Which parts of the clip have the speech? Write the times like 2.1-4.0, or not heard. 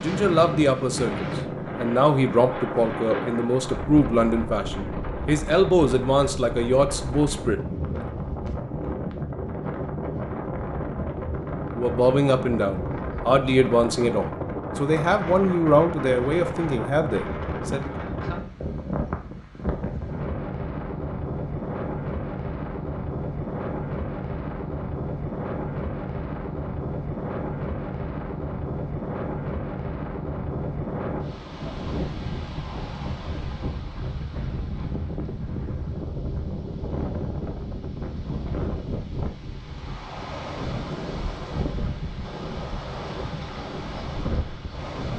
0.0-8.1, 11.8-17.9.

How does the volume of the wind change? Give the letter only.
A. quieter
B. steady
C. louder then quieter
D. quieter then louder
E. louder
B.